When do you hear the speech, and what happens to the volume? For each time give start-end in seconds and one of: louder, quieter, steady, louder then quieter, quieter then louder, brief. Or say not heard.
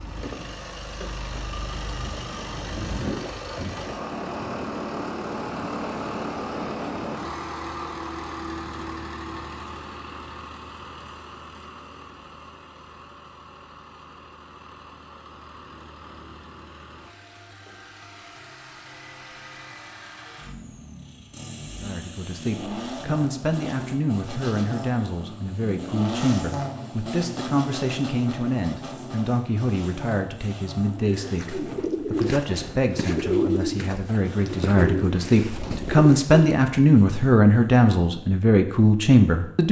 21.8-39.6 louder.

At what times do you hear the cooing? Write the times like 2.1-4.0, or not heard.
30.9-36.6.